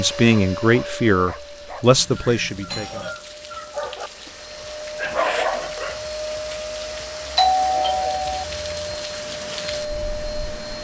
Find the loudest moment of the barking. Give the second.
5 s.